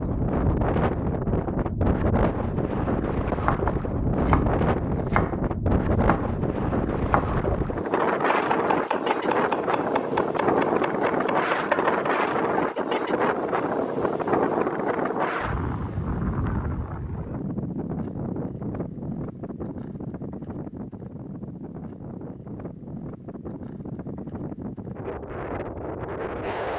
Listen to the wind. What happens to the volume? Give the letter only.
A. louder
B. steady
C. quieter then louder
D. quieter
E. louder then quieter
D.